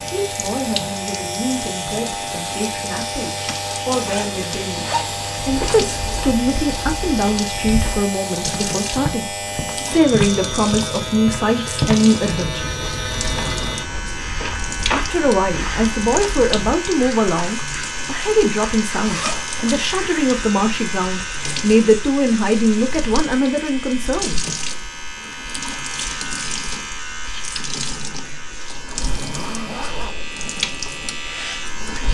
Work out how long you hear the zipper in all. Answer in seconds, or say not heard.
3 s.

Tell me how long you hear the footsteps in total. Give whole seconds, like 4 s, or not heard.
11 s.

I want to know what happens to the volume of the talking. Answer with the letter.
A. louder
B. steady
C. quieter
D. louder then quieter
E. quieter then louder
A.